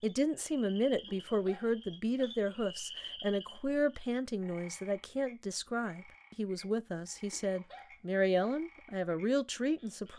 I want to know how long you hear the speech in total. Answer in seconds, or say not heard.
10 s.